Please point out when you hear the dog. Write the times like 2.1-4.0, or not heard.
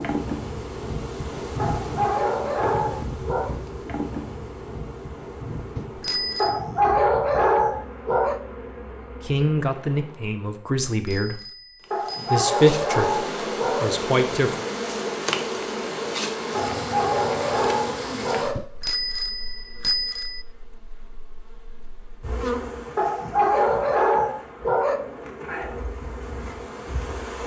1.6-3.5, 6.4-8.4, 11.9-13.9, 16.5-18.6, 22.9-25.0.